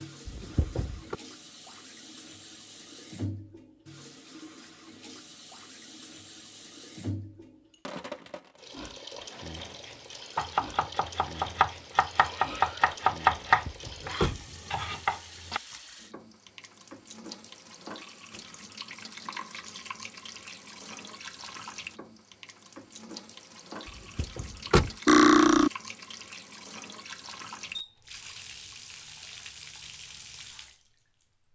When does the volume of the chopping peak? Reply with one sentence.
The loudest moment of the chopping is at 13 seconds.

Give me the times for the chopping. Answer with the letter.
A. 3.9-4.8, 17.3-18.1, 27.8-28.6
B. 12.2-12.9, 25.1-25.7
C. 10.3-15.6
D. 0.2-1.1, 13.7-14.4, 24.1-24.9
C.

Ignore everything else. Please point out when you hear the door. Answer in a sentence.
You can hear the door from 0.2 to 1.1 s, from 13.7 to 14.4 s and from 24.1 to 24.9 s.